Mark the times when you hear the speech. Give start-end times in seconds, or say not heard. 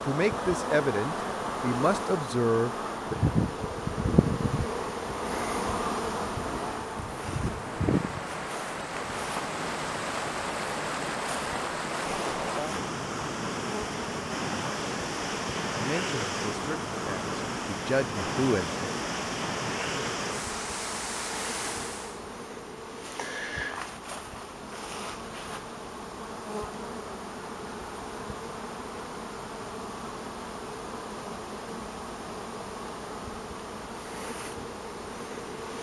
0.1-3.1, 15.7-18.8.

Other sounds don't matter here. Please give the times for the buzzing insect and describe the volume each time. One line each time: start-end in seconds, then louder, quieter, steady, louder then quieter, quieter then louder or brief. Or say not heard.
0.0-35.7 quieter.